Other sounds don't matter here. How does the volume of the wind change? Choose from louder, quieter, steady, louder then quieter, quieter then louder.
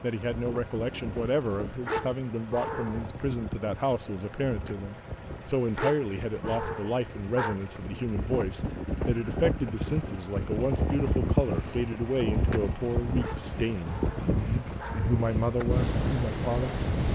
louder.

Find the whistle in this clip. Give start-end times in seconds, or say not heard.
not heard.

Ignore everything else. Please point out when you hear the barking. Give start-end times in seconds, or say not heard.
1.9-3.0, 5.8-7.6, 13.2-15.2.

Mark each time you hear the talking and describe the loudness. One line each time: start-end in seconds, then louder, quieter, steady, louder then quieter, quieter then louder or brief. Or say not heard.
0.0-16.9 steady.